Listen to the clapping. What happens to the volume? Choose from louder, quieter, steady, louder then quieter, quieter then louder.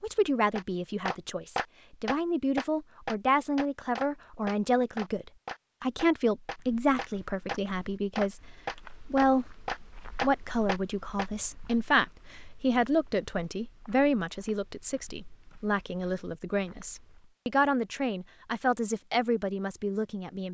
quieter then louder.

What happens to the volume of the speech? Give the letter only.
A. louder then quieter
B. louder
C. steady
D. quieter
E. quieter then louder
C.